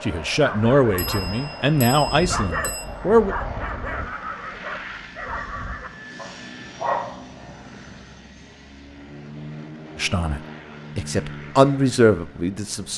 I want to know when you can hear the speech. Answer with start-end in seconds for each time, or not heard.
0.0-3.4, 9.9-12.9.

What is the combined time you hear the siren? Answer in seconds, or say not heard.
not heard.